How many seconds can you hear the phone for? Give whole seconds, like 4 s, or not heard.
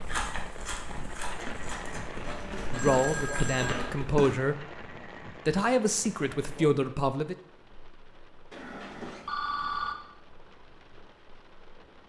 3 s.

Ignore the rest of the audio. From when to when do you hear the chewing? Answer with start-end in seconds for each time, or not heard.
0.0-4.4.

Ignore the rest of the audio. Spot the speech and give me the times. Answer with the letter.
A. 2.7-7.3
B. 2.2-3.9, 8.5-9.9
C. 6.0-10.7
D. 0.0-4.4
A.